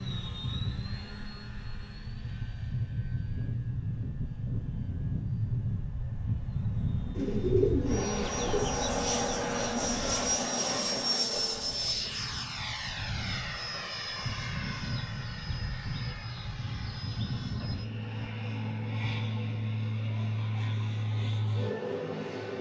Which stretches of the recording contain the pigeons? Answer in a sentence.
You can hear the pigeons from 7.2 to 8.7 s.